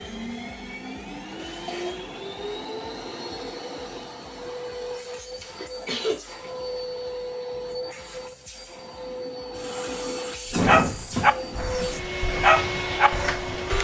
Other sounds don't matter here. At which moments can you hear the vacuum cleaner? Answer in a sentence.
The vacuum cleaner can be heard from 0.0 to 13.7 s.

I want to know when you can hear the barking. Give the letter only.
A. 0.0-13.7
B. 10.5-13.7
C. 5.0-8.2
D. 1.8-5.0
B.